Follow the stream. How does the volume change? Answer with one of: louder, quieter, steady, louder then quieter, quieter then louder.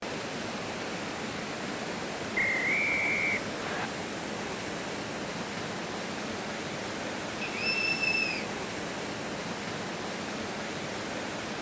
steady.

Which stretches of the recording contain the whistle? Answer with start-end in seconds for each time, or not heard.
2.4-3.9, 7.5-8.5.